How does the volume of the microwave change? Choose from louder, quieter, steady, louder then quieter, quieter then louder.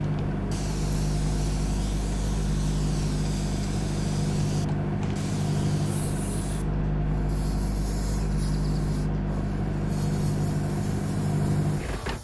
steady.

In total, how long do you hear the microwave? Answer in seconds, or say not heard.
12 s.